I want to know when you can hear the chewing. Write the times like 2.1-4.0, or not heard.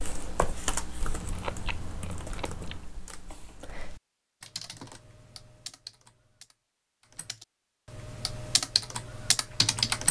1.0-2.9.